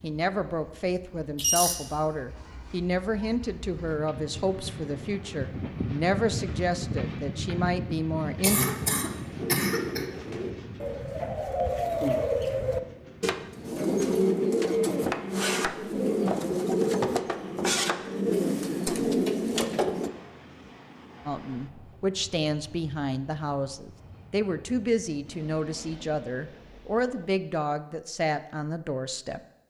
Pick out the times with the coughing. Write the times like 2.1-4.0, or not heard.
8.4-10.1.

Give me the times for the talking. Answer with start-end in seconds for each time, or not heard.
0.0-8.7, 21.2-29.4.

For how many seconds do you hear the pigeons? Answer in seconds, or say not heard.
11 s.